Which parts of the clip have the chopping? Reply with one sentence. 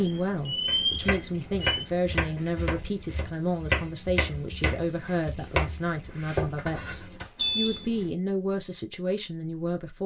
You can hear the chopping from 0.7 to 7.2 s.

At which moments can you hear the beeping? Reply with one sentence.
You can hear the beeping from 0.1 to 1.9 s and from 7.2 to 7.9 s.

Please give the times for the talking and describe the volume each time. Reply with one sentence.
You can hear the talking from 0.0 to 10.0 s, at a steady volume.